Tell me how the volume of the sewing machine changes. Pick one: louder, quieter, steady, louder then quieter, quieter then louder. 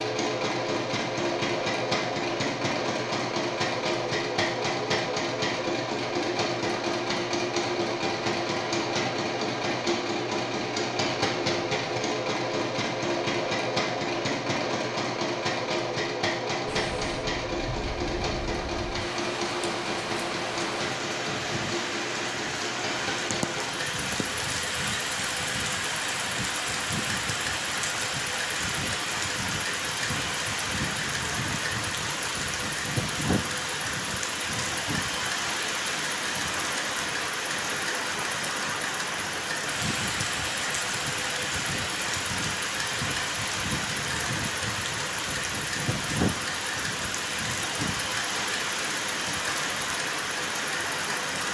quieter.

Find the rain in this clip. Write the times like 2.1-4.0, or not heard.
16.6-51.4.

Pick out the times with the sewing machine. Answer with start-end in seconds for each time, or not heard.
0.0-51.4.